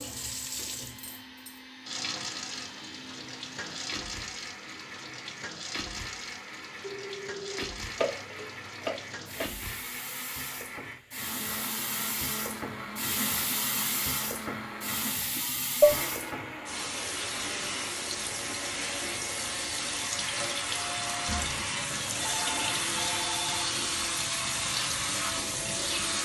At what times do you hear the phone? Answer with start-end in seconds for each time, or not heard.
6.8-7.7, 21.2-23.8.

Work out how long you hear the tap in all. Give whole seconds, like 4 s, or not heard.
26 s.